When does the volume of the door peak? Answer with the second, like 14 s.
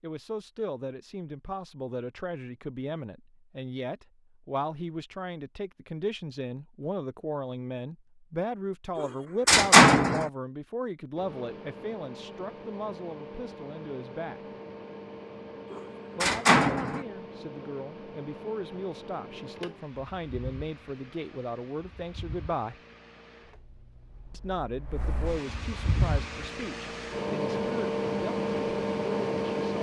10 s.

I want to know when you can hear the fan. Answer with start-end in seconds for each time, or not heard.
11.2-29.7.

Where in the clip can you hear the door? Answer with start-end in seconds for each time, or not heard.
8.9-10.2, 15.7-17.1.